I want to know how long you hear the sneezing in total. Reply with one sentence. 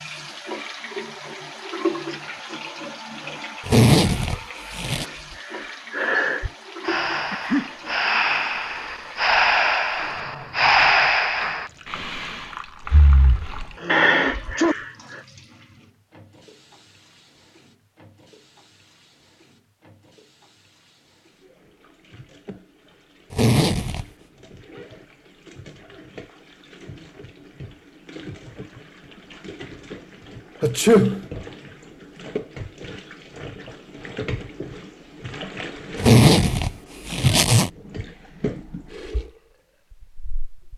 You can hear the sneezing for 2 seconds altogether.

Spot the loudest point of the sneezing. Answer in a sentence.
The loudest moment of the sneezing is at 31 seconds.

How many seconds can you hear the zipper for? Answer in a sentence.
You can hear the zipper for 4 seconds altogether.